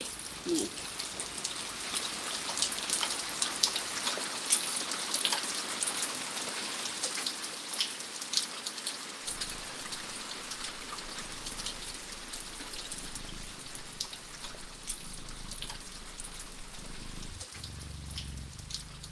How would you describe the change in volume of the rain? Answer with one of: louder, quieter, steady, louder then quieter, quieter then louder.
quieter.